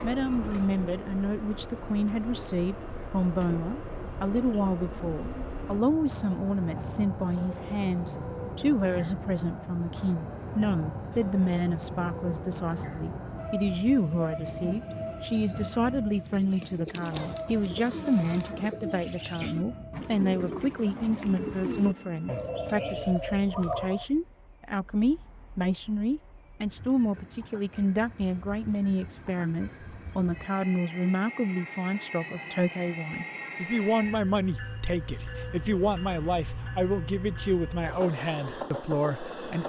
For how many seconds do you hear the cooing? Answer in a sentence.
You can hear the cooing for 8 seconds altogether.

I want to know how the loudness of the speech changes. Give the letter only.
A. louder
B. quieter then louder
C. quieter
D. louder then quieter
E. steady
E.